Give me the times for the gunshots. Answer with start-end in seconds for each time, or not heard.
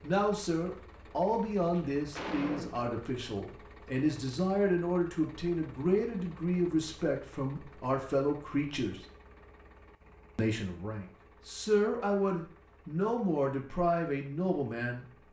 1.6-3.0.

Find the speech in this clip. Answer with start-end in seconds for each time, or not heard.
0.0-9.0, 10.3-15.1.